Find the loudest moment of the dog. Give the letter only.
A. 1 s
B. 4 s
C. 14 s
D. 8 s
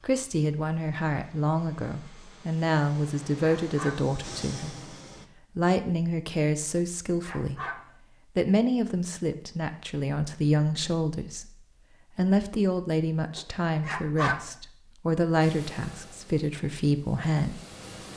C.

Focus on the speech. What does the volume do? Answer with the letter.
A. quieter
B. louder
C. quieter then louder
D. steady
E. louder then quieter
D.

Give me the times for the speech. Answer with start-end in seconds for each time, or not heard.
0.0-7.7, 8.3-17.6.